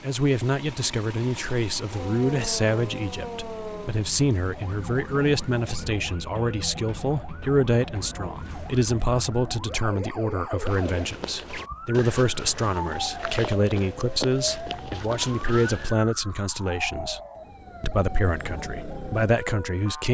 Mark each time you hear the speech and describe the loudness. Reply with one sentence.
The speech can be heard from 0.0 to 17.2 s, at a steady volume; and briefly from 17.8 to 20.0 s.